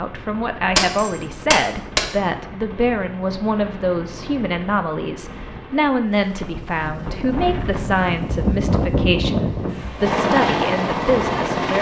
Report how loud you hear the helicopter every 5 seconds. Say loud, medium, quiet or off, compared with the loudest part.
quiet, quiet, loud.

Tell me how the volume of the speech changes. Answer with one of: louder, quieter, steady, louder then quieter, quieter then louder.
steady.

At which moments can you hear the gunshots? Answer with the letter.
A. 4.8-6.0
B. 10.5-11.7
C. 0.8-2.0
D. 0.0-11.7
C.